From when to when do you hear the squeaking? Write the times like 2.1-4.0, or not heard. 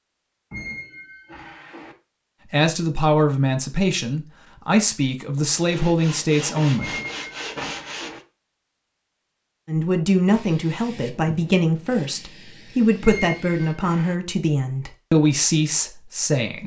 0.5-1.9, 6.8-8.2, 13.0-14.2.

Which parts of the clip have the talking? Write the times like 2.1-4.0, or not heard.
2.5-7.0, 9.7-16.6.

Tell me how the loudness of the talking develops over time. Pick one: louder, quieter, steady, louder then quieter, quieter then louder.
steady.